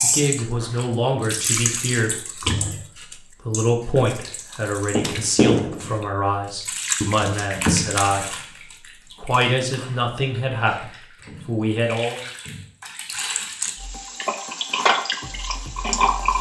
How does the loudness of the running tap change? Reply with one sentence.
The volume of the running tap goes down, then up.